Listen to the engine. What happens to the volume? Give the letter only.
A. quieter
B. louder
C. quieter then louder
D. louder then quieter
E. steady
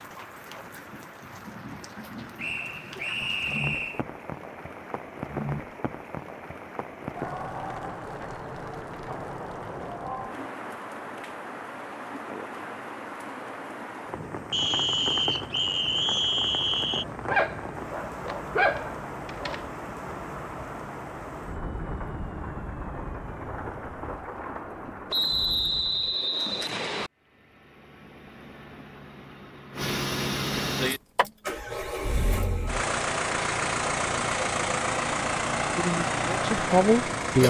B.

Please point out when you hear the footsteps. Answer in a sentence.
You can't hear the footsteps here.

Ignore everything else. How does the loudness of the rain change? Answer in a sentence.
The loudness of the rain stays about the same.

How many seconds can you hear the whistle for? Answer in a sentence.
The whistle can be heard for 6 seconds in total.